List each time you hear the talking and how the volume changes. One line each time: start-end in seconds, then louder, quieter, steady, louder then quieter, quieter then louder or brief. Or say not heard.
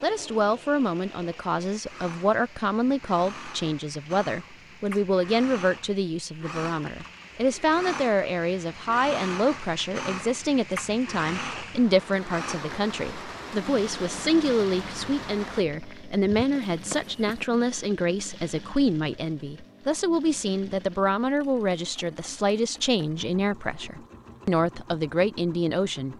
0.0-26.1 steady.